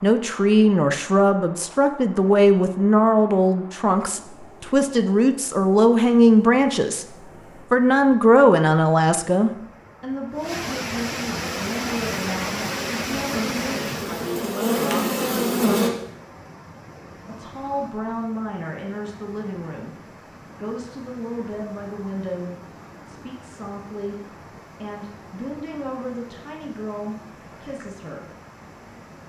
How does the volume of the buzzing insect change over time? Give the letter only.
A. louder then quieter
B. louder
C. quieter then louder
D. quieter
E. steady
B.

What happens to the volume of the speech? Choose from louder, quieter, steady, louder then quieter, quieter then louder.
quieter.